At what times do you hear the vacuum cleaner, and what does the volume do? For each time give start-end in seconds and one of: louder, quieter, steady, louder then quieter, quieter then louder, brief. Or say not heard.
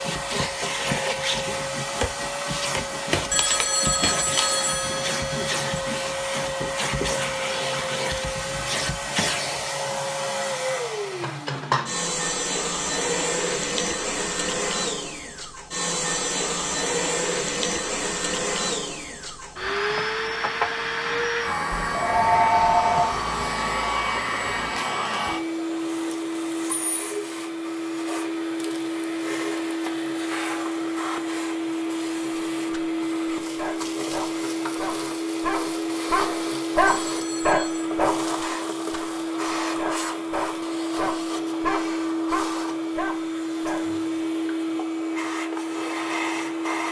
0.0-46.8 steady.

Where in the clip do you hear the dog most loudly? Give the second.
37 s.